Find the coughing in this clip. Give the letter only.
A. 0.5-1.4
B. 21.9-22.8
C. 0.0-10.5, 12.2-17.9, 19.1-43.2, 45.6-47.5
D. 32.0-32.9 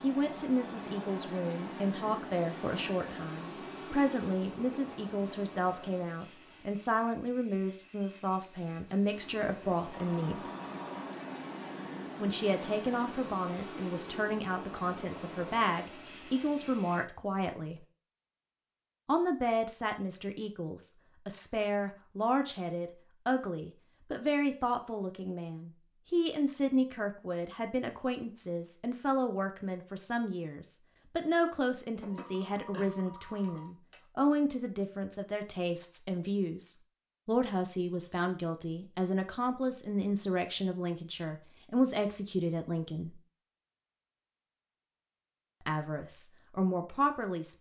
D.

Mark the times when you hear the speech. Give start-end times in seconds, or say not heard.
0.0-10.5, 12.2-17.9, 19.1-43.2, 45.6-47.5.